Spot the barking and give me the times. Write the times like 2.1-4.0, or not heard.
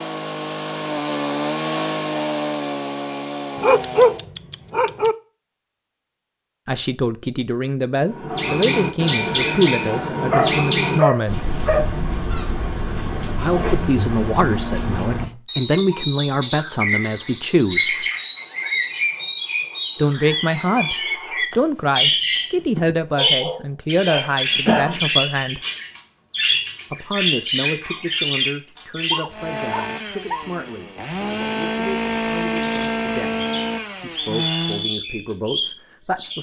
3.5-5.2, 10.3-11.9, 23.0-24.9, 29.1-30.5.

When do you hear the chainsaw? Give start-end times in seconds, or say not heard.
0.0-4.3, 29.3-34.9.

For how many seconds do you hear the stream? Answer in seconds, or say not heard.
not heard.